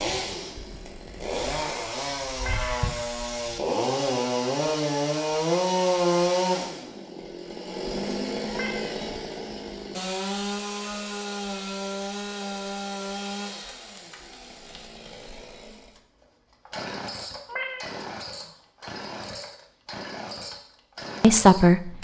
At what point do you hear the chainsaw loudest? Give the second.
6 s.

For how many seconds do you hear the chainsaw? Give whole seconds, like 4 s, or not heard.
22 s.